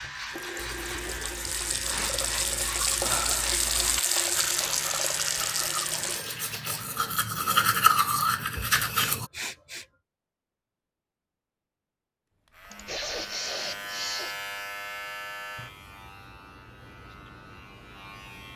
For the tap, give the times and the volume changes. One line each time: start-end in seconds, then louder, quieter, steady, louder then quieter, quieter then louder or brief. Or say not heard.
0.0-6.2 louder.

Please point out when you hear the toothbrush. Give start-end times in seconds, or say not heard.
0.6-9.3.